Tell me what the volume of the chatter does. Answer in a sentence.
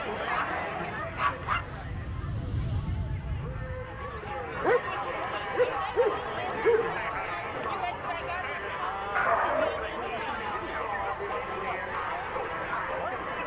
The volume of the chatter goes up.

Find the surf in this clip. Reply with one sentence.
The surf can't be heard in this clip.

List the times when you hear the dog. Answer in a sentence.
You can hear the dog from 0.1 to 1.6 s, from 4.6 to 7.0 s and from 9.2 to 10.5 s.